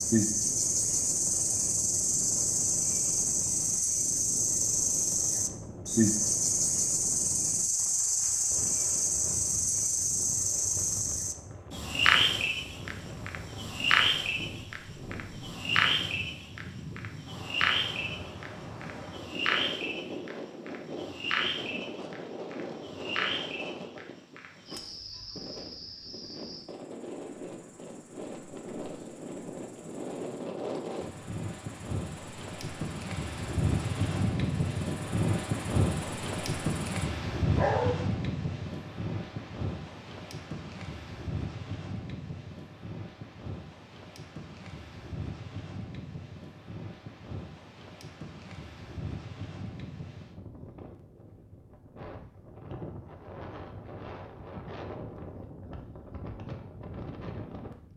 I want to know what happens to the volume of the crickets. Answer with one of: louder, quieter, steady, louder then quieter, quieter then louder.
quieter.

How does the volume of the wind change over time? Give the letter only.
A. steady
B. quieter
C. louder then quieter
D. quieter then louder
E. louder
C.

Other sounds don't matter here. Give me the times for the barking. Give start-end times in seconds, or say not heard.
37.5-38.0.